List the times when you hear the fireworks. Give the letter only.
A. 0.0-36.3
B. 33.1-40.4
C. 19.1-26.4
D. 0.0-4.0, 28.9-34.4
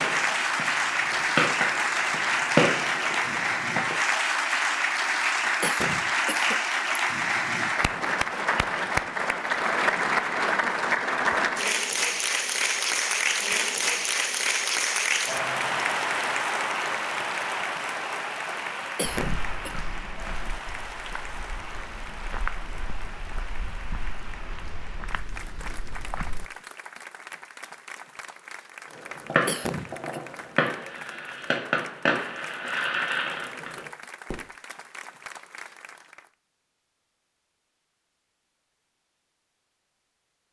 D.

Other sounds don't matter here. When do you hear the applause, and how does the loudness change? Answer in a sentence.
The applause can be heard from 0.0 to 36.3 s, getting quieter.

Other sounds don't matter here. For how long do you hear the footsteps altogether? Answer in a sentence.
You can hear the footsteps for 7 seconds altogether.